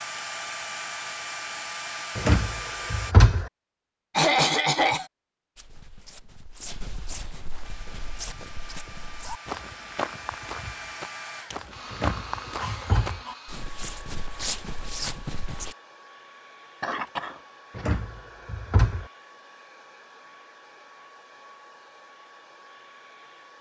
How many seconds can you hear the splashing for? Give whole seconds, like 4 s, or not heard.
not heard.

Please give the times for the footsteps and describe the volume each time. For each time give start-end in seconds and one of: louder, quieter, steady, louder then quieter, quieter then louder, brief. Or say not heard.
5.5-15.8 louder.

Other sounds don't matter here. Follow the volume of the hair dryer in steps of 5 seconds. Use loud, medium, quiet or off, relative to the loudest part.
loud, medium, medium, quiet, quiet.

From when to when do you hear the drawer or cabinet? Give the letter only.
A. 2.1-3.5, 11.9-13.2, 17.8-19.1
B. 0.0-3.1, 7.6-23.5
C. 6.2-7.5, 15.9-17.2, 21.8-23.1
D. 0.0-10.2
A.